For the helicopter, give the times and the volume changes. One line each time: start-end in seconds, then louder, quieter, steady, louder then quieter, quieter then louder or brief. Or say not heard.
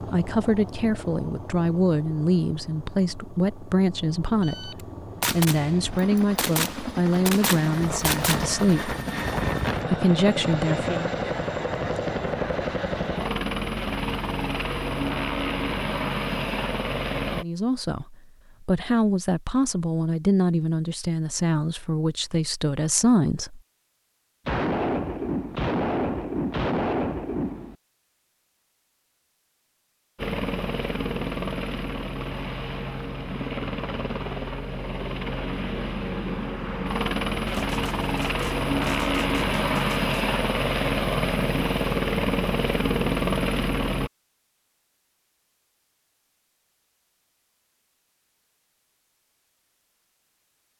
0.0-17.4 louder
30.1-44.1 louder.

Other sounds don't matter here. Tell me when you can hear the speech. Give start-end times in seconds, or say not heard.
0.1-8.9, 9.8-11.1, 17.3-23.6.